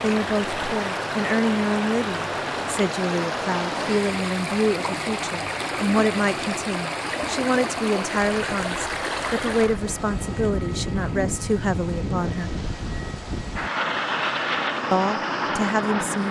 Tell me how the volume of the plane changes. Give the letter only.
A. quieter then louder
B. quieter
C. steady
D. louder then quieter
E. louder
E.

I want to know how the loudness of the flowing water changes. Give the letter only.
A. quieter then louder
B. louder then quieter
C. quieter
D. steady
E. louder
C.